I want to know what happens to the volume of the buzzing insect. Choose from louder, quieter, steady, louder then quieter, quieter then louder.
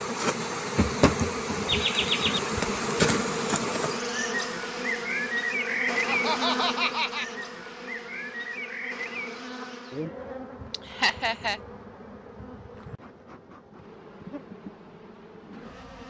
quieter.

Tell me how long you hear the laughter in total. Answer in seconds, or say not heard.
3 s.